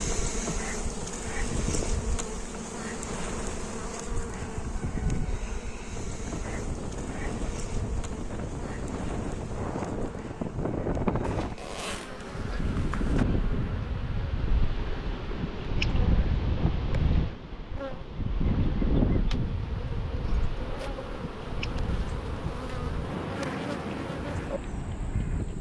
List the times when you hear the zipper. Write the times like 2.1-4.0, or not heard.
11.2-13.2.